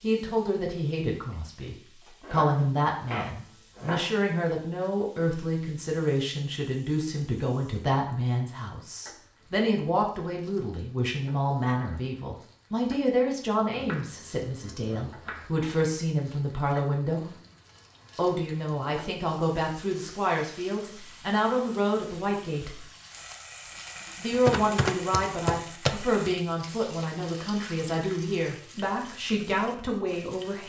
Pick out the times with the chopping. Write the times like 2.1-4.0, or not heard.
2.2-4.1, 13.7-15.7, 24.4-26.3.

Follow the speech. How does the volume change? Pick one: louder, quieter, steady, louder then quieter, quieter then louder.
steady.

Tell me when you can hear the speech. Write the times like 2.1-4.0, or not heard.
0.0-17.3, 18.1-22.9, 24.1-30.6.